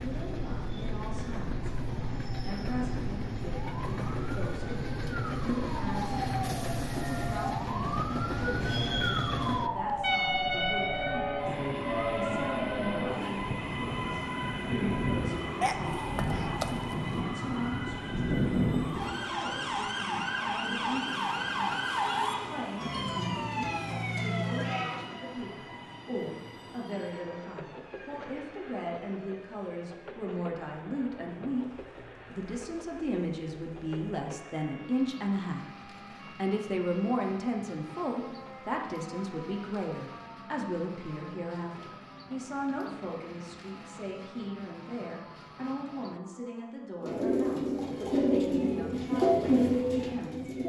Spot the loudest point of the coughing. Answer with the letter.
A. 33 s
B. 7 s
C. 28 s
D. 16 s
D.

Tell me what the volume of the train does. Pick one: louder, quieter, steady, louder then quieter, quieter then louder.
quieter.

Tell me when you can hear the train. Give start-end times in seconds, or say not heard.
0.0-46.2.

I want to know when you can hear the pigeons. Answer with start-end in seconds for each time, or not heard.
47.0-50.6.